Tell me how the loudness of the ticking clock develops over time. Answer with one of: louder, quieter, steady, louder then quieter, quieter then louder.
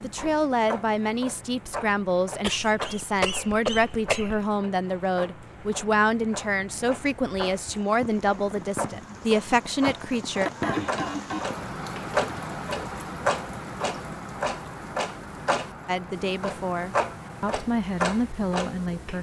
louder.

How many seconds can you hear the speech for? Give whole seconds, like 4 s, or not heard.
14 s.